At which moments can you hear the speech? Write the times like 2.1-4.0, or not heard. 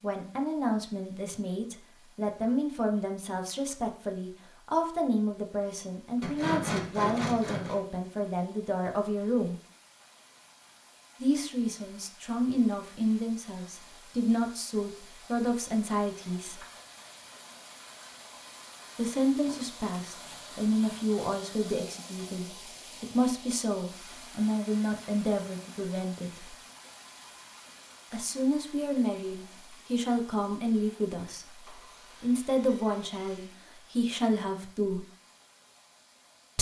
0.0-9.6, 11.2-16.6, 18.9-26.6, 28.1-35.0.